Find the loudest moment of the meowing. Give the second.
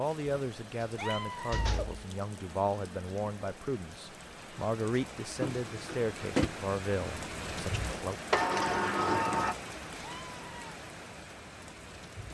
1 s.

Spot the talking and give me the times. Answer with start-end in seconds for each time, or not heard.
0.0-8.2.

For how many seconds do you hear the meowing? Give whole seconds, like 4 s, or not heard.
2 s.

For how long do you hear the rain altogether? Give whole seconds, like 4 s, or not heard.
12 s.